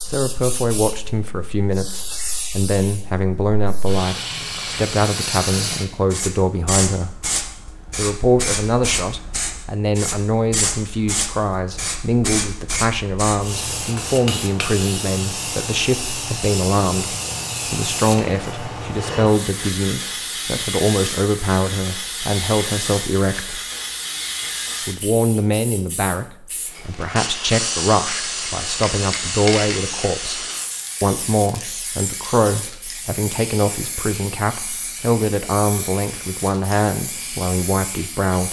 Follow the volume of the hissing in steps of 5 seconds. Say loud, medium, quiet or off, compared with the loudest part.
medium, loud, loud, loud, loud, loud, medium, medium.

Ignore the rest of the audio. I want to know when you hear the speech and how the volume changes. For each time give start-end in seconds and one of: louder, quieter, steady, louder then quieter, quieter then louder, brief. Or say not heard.
0.1-7.2 steady
7.9-23.6 steady
24.9-38.4 steady.